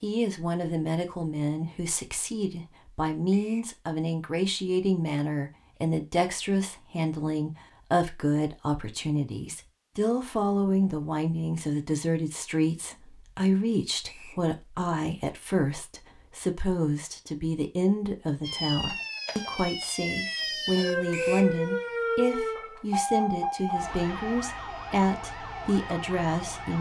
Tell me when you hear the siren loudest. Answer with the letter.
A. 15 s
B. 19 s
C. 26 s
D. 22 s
D.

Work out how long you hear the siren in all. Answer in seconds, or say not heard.
8 s.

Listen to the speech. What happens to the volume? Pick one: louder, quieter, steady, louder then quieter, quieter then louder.
steady.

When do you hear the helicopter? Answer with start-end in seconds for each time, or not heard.
not heard.